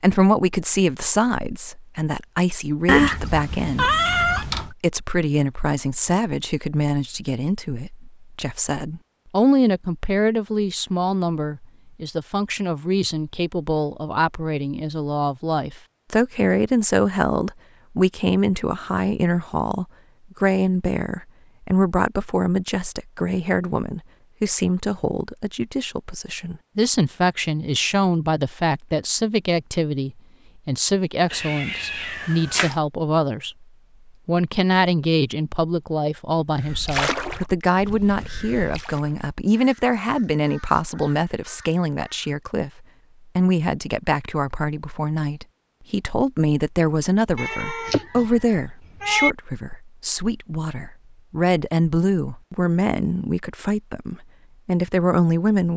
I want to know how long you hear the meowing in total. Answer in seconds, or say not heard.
5 s.